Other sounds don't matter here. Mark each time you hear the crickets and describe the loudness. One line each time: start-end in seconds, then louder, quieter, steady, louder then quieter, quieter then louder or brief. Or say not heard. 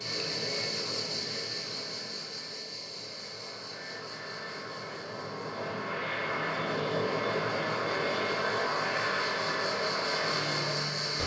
0.0-11.2 quieter then louder.